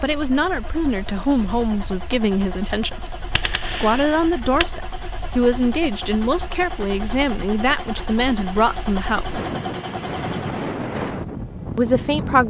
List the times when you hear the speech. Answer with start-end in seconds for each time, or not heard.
0.0-9.4, 11.8-12.4.